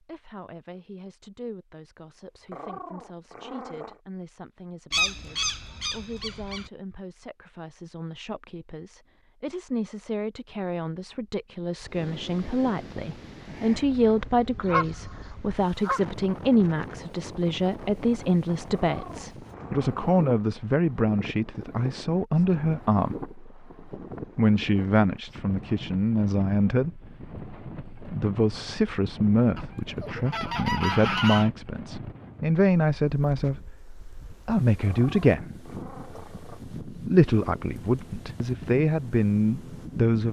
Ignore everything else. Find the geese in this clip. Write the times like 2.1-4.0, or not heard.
4.9-6.7, 14.6-16.0, 29.6-31.5.